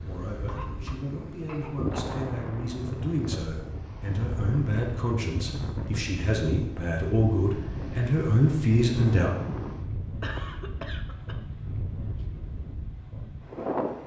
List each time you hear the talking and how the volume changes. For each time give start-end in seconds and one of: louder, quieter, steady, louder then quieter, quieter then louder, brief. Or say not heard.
0.0-9.3 louder.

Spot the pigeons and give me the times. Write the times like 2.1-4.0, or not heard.
not heard.